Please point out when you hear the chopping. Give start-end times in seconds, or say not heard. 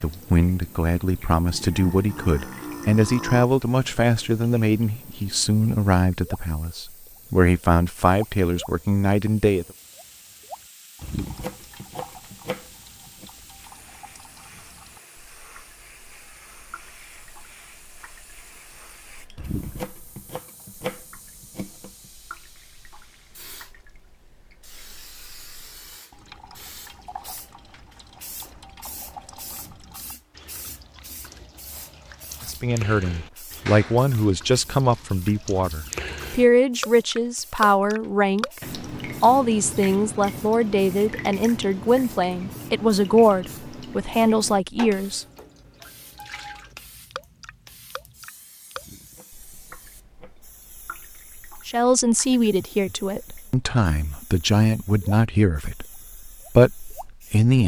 11.0-13.3, 19.4-22.1, 48.8-50.4.